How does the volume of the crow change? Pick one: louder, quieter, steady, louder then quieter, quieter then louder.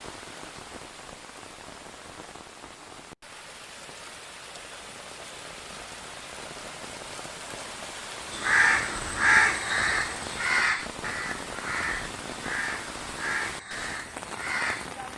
quieter.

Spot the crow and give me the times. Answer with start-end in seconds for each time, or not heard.
8.3-14.8.